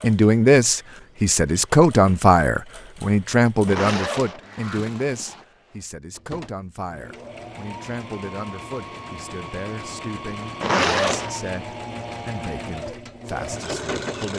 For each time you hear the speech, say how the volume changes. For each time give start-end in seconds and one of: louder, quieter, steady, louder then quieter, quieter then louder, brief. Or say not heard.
0.0-14.3 quieter.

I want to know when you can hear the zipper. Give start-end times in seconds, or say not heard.
3.6-5.5, 10.6-11.5.